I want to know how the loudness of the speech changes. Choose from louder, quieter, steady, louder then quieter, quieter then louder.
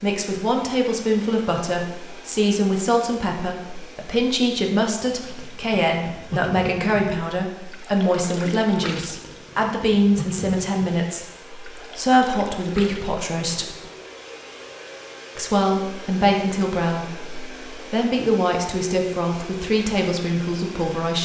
steady.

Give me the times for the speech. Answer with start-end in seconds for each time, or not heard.
0.0-13.8, 15.3-21.2.